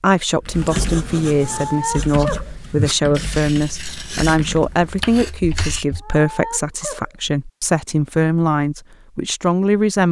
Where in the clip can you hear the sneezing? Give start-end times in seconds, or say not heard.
1.4-2.5, 6.0-7.1.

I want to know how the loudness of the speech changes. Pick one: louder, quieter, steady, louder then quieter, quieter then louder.
steady.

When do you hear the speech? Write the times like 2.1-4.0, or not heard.
0.0-10.0.